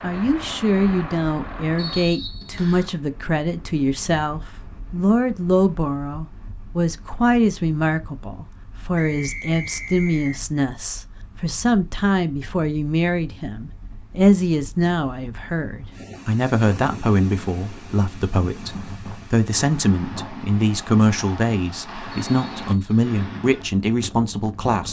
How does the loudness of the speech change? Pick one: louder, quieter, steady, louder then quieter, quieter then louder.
steady.